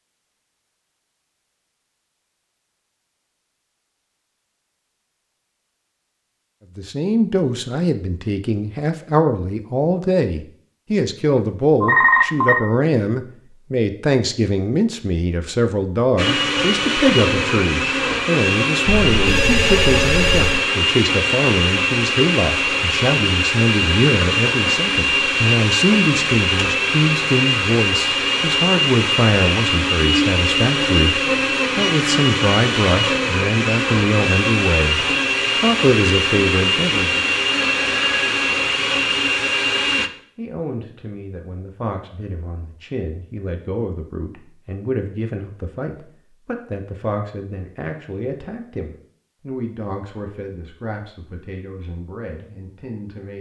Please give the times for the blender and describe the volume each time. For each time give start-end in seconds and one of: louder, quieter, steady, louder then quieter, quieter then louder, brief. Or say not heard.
16.1-40.1 steady.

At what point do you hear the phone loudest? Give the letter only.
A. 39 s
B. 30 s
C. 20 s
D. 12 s
D.